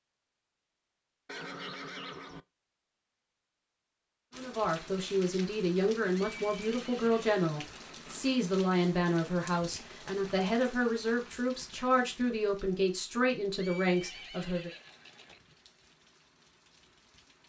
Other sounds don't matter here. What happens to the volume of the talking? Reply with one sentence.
The volume of the talking stays about the same.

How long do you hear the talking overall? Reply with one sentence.
The talking can be heard for 10 seconds in total.